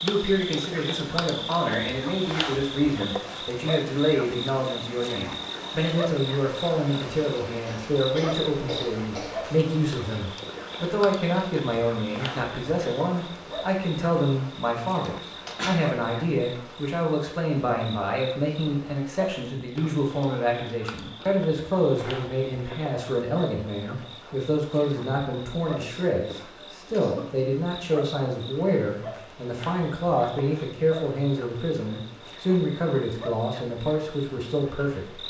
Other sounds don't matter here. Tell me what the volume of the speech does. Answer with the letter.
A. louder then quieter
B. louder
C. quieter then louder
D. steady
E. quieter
D.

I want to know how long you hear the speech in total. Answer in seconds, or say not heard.
35 s.